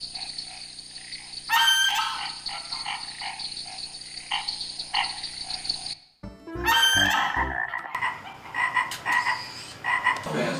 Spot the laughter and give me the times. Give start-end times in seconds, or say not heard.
not heard.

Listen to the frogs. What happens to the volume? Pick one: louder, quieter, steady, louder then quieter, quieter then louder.
louder.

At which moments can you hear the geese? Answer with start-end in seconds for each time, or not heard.
1.4-3.0, 6.6-8.5.